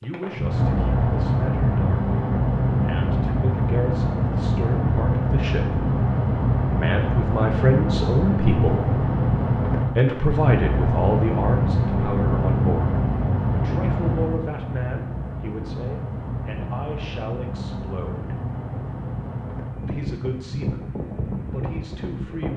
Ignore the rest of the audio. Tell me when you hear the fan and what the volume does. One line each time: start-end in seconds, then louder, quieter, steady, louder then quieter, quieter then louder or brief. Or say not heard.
0.0-22.5 quieter.